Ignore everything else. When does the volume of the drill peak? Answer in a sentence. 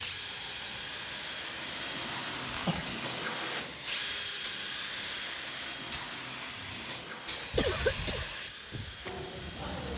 The loudest moment of the drill is at 3 seconds.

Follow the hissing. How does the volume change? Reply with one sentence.
The loudness of the hissing stays about the same.